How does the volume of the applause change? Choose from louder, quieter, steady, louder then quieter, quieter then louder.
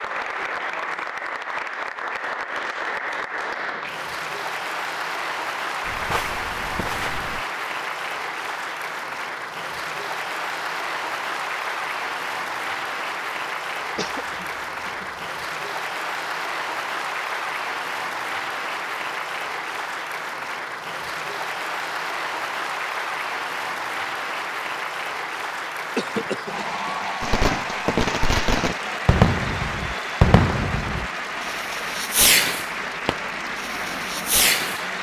steady.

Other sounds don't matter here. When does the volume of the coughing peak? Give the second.
26 s.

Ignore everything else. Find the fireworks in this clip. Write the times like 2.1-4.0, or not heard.
27.2-34.8.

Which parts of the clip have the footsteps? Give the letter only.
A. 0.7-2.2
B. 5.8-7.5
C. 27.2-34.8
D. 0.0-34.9
B.